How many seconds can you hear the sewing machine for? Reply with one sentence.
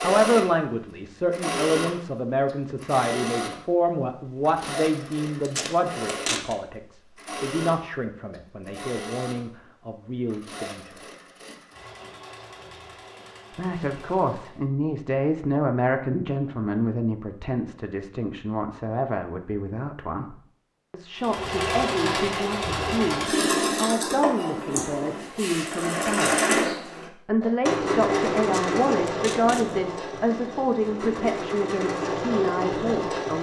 You can hear the sewing machine for 27 seconds altogether.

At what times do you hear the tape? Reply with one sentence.
The tape can be heard from 5.5 to 6.5 s and from 28.4 to 29.8 s.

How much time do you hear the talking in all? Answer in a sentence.
The talking can be heard for 30 seconds in total.